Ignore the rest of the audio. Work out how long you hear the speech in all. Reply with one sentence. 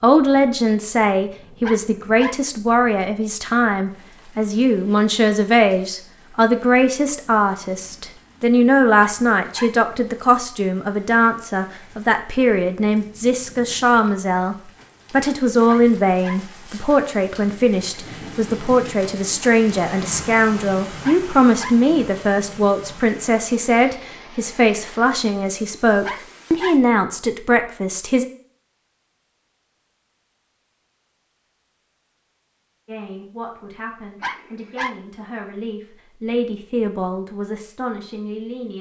You can hear the speech for 34 seconds altogether.